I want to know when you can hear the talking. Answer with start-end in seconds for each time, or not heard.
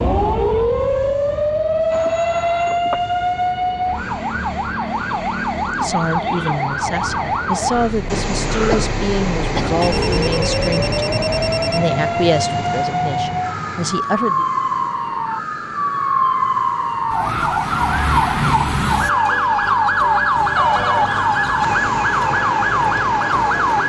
5.8-14.4.